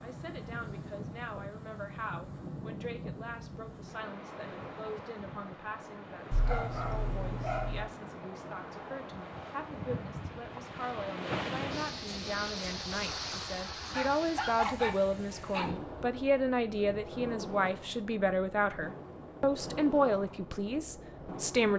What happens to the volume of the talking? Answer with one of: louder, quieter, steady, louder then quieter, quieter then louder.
louder.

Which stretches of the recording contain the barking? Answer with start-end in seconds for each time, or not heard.
6.3-7.9, 13.9-15.8.